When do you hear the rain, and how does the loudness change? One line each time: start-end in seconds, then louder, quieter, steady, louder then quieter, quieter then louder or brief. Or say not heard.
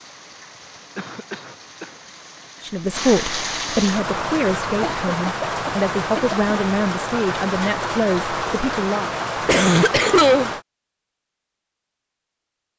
0.0-10.7 louder.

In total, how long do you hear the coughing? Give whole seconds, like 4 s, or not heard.
4 s.